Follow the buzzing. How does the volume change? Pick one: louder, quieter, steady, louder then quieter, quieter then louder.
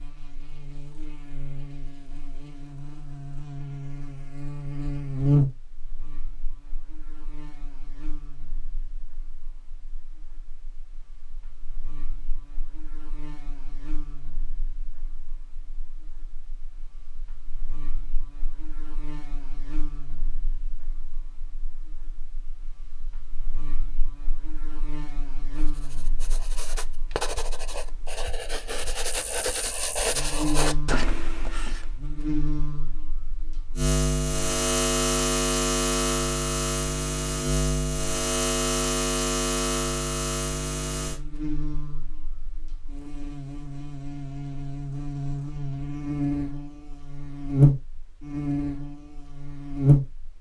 quieter then louder.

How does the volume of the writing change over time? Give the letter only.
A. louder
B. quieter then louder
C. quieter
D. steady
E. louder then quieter
A.